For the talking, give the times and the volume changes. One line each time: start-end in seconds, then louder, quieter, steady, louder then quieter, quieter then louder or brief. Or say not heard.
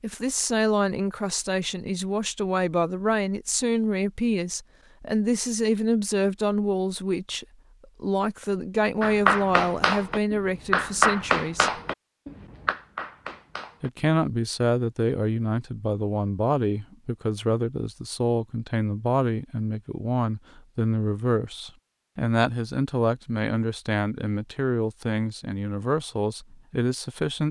0.0-11.8 steady
13.8-27.4 steady.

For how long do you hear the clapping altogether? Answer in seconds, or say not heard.
5 s.